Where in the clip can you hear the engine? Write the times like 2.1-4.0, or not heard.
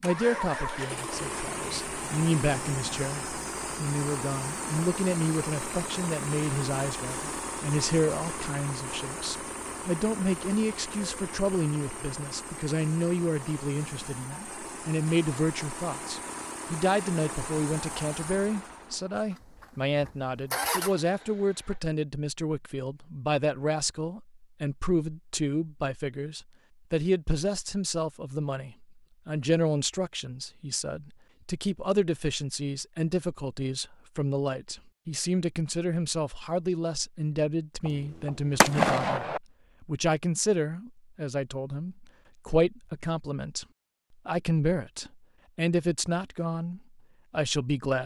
0.0-21.8.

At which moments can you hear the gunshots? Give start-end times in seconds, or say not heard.
37.9-39.4.